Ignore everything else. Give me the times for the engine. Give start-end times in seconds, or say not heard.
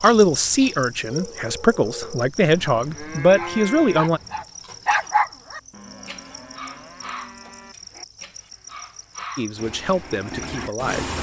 9.6-11.1.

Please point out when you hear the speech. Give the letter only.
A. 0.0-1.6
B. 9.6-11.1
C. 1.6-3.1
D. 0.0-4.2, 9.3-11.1
D.